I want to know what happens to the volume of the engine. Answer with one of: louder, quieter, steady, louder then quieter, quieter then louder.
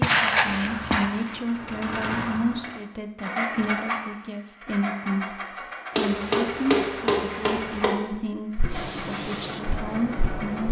quieter.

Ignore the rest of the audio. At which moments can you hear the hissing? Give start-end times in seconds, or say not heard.
8.7-10.6.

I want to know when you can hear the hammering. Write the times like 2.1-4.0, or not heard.
6.0-7.9.